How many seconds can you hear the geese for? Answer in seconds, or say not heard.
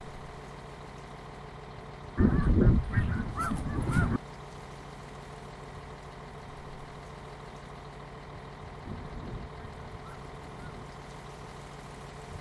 4 s.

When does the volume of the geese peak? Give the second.
3 s.